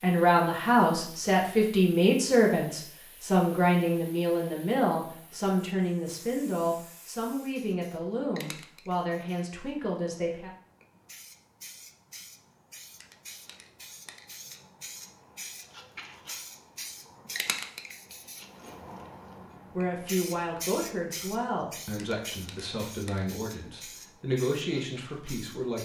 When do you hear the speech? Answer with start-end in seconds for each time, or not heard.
0.0-10.5, 19.7-25.8.